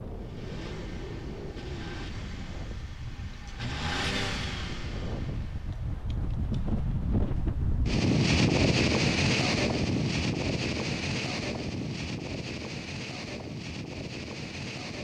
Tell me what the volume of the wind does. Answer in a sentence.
The volume of the wind goes up, then down.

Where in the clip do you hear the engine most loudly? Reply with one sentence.
The volume of the engine peaks at 4 seconds.